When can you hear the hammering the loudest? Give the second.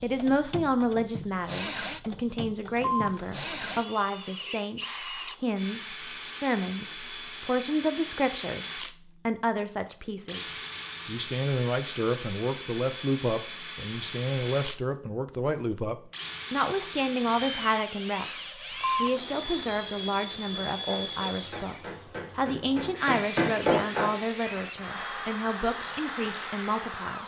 24 s.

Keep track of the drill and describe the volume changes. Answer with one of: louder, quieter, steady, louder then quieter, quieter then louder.
steady.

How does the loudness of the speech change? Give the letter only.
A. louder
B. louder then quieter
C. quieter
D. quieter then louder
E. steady
E.